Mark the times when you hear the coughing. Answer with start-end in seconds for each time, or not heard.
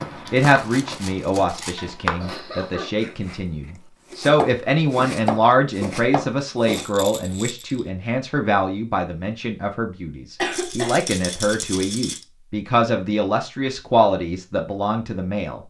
2.2-3.0, 10.3-11.1.